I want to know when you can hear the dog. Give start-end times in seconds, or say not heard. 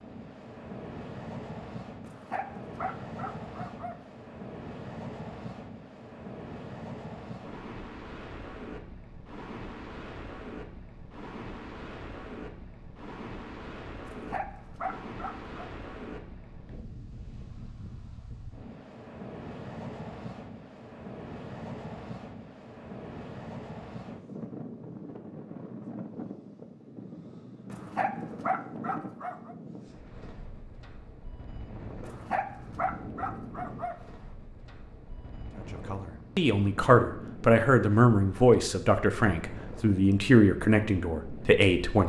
2.0-4.0, 14.1-15.7, 27.7-29.6, 32.0-34.0.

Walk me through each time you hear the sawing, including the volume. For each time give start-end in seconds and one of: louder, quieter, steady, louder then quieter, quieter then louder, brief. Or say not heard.
not heard.